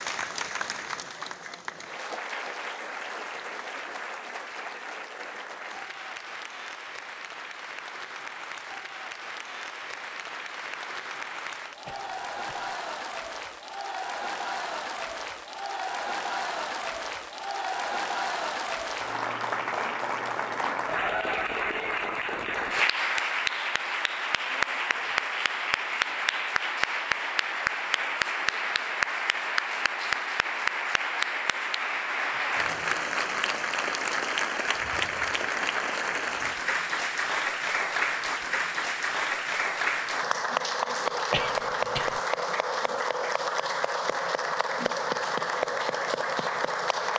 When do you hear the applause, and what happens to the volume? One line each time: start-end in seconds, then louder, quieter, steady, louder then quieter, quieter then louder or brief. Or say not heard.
0.0-47.1 louder.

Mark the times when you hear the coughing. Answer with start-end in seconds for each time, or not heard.
11.8-12.8, 41.3-42.2.